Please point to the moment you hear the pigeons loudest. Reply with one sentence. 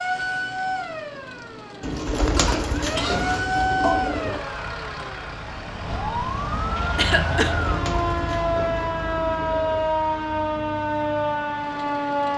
The loudest moment of the pigeons is at 2 seconds.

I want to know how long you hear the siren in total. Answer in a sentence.
You can hear the siren for 12 seconds altogether.